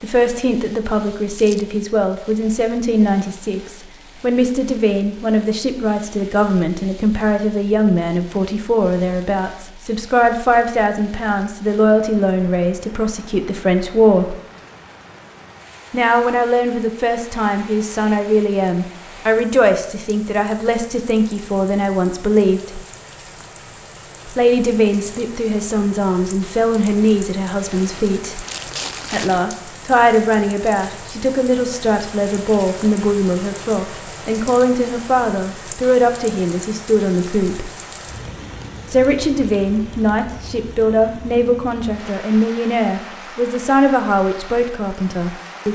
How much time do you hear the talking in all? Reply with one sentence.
The talking can be heard for 41 seconds in total.